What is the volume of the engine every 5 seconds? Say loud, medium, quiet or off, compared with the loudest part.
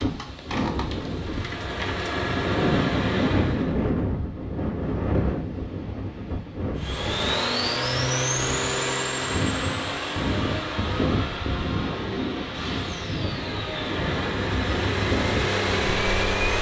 medium, loud, medium, loud.